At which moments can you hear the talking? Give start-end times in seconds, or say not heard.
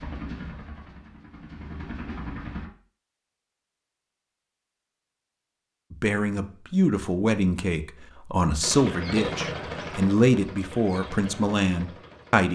5.9-12.4.